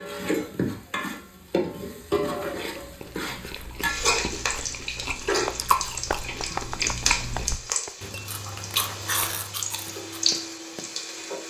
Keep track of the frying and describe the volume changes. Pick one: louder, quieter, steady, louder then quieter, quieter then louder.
steady.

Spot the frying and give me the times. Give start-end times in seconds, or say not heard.
0.0-11.4.